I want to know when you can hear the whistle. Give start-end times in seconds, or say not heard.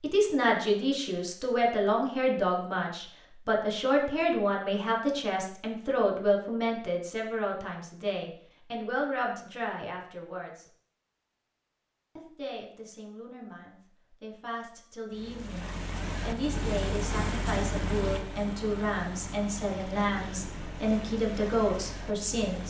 not heard.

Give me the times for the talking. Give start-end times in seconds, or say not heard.
0.0-10.7, 12.2-22.6.